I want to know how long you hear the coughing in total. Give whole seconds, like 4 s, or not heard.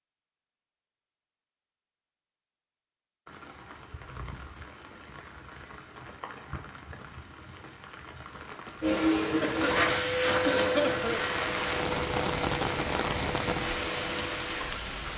2 s.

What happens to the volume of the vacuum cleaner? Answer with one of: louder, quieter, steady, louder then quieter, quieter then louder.
quieter.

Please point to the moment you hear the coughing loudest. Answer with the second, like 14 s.
11 s.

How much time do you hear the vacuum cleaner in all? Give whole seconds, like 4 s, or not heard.
6 s.